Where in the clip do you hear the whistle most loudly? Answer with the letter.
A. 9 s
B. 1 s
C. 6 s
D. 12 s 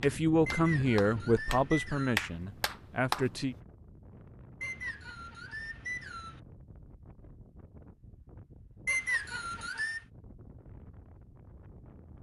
A.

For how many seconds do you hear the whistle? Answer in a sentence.
You can hear the whistle for 5 seconds altogether.